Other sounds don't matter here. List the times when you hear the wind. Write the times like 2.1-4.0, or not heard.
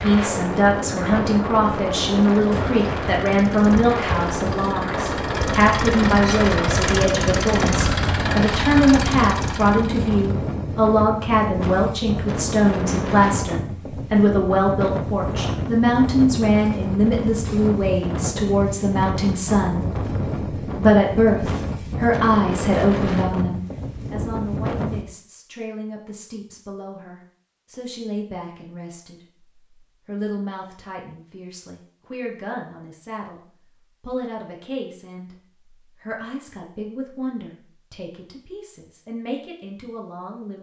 0.0-25.1.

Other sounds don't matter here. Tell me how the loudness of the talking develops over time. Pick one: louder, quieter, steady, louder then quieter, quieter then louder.
quieter.